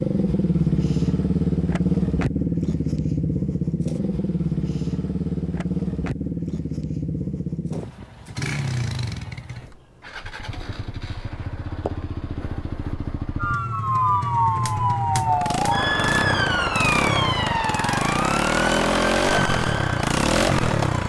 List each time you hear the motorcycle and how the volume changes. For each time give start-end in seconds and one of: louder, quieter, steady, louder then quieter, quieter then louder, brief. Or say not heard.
0.0-21.0 quieter then louder.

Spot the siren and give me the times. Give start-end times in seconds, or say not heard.
13.4-21.0.